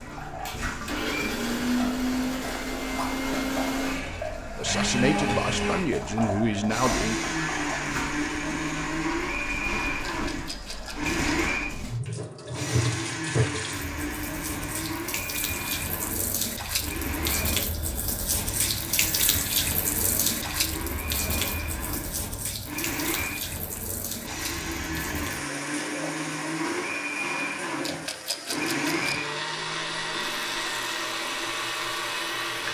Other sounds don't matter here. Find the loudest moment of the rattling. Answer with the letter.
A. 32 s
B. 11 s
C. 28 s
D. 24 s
C.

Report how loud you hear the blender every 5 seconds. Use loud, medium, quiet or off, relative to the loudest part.
loud, loud, loud, medium, medium, loud, loud.